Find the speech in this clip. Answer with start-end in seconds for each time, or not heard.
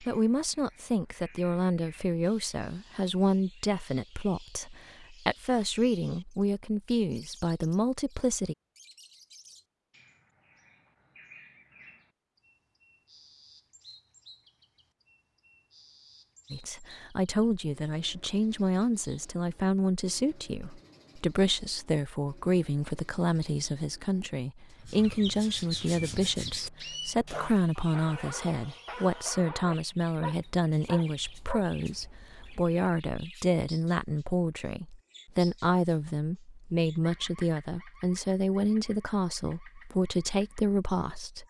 0.0-8.6, 16.5-41.4.